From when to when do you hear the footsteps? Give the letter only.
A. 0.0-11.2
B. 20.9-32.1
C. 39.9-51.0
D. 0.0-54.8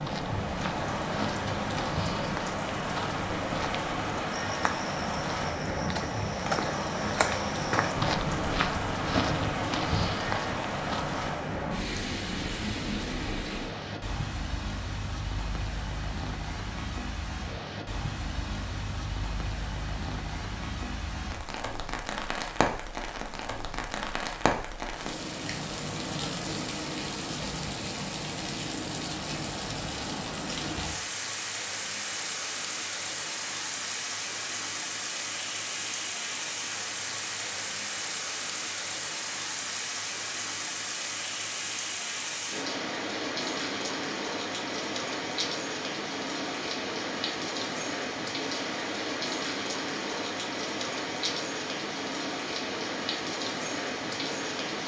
A.